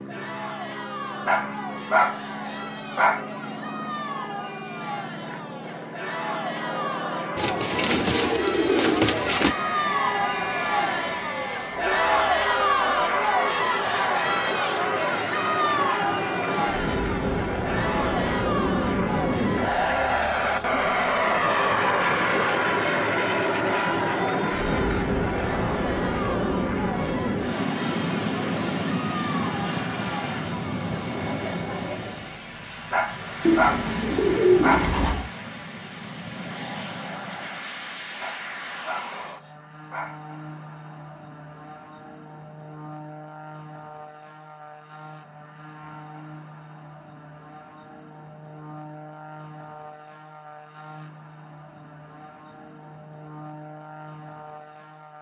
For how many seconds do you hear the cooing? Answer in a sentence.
You can hear the cooing for 4 seconds altogether.